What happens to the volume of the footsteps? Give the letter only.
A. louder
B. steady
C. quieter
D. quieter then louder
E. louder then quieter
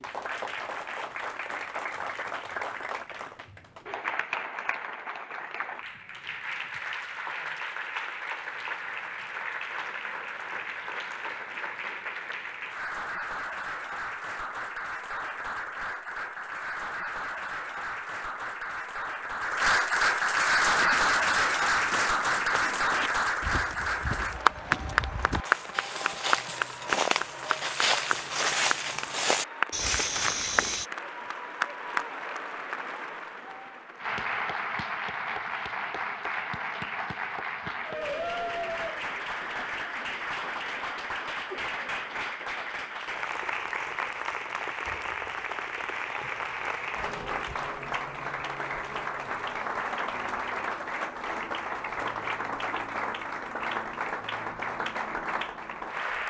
A.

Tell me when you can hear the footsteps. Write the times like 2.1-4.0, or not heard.
20.6-30.9.